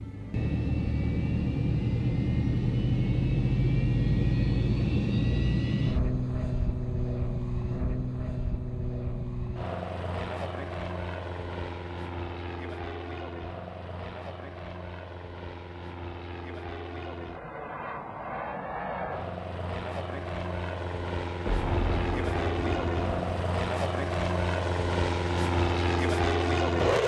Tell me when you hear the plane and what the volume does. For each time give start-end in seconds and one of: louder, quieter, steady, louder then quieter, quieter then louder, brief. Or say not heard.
0.0-27.0 quieter then louder.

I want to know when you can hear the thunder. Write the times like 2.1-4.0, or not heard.
21.4-23.4.